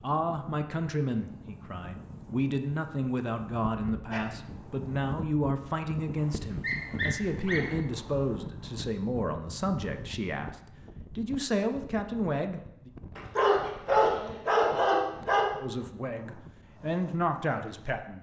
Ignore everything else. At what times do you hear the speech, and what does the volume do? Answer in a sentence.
The speech can be heard from 0.0 to 12.9 s, at a steady volume; and briefly from 15.6 to 18.1 s.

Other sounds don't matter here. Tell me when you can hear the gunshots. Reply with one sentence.
The gunshots can't be heard in this clip.